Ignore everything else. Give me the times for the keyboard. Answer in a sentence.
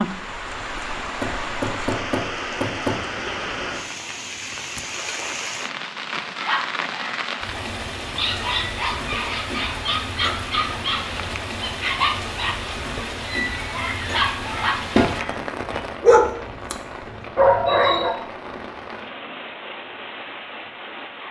The keyboard can't be heard in this clip.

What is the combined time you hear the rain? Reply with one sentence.
You can hear the rain for 21 seconds altogether.